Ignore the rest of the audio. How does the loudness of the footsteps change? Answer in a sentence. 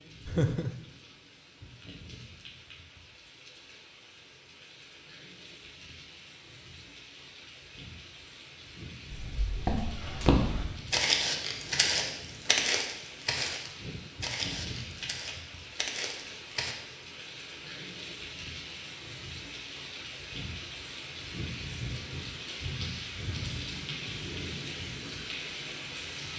The loudness of the footsteps goes down.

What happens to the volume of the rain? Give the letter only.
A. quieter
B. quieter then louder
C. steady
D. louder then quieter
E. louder
E.